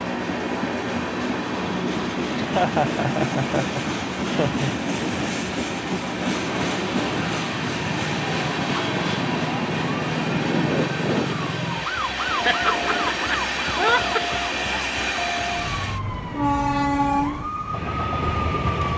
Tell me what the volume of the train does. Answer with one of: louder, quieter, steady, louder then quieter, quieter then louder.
steady.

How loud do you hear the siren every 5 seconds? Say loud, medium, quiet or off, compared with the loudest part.
off, loud, loud, loud.